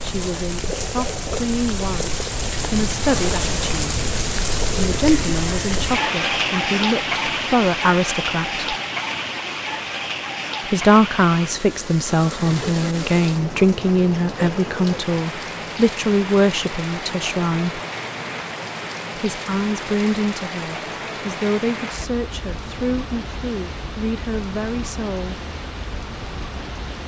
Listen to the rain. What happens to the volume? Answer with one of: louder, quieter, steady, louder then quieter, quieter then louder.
quieter.